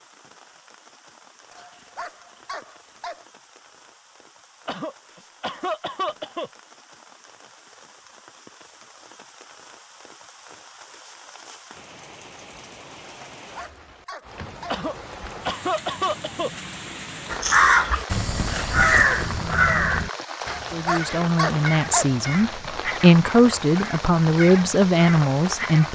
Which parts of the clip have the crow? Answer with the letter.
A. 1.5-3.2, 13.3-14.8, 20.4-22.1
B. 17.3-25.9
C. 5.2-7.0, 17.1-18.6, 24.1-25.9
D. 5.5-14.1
B.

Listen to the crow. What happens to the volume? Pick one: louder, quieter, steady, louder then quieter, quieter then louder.
quieter.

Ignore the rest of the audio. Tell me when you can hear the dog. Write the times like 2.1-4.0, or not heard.
1.5-3.2, 13.3-14.8, 20.4-22.1.